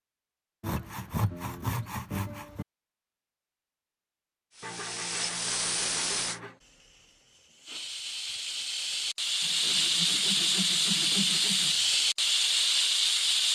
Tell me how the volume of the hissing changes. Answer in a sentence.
The volume of the hissing goes down, then up.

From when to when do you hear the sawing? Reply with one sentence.
You can hear the sawing from 0.6 to 2.6 s, from 4.6 to 6.6 s and from 9.4 to 11.8 s.